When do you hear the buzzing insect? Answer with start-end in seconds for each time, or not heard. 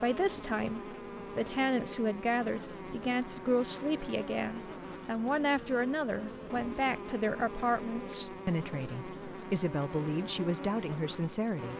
0.0-11.7.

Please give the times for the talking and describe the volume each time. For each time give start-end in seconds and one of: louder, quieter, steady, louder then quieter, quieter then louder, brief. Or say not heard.
0.0-11.7 steady.